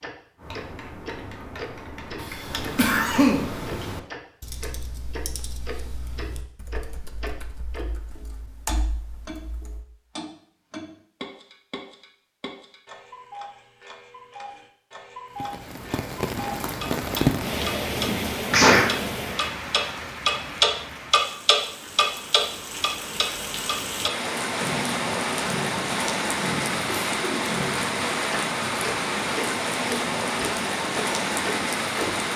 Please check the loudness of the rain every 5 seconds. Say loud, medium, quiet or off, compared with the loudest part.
off, off, off, loud, medium, loud, loud.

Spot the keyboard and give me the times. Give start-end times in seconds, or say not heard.
0.3-9.8.